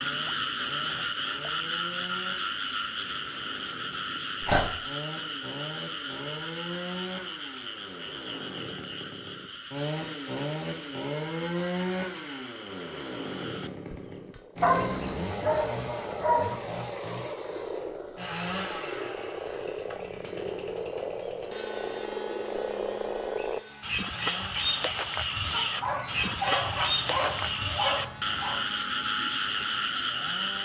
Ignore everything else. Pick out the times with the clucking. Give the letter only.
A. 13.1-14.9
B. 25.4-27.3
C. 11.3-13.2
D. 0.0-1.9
B.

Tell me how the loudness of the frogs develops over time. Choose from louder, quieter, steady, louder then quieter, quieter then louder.
quieter then louder.